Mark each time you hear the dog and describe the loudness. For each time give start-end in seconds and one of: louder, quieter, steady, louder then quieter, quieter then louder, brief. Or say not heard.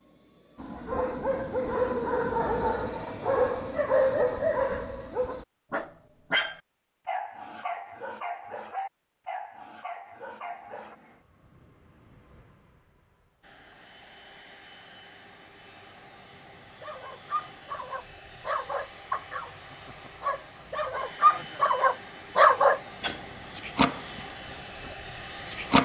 0.6-10.9 quieter
16.8-25.7 louder then quieter.